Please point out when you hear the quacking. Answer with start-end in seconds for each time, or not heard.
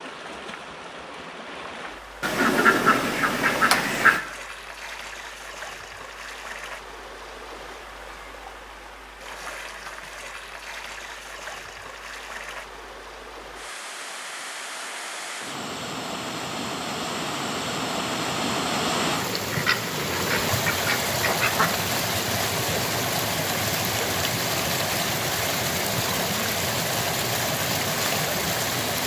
2.2-4.2, 19.5-21.7.